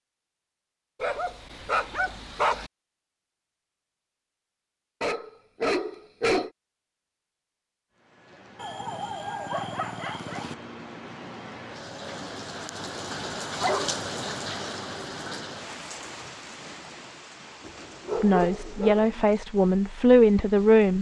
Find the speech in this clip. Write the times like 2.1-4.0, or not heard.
18.2-20.9.